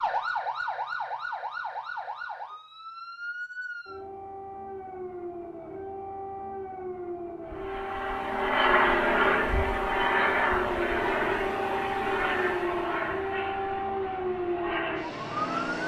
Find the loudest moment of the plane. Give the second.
9 s.